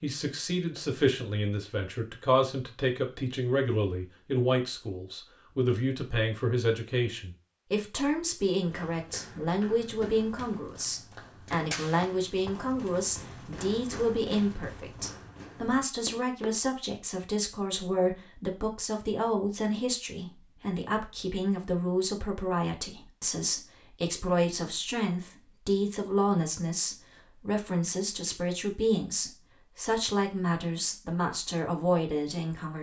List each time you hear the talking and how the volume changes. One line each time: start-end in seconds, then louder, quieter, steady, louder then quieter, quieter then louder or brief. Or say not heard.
0.0-32.7 steady.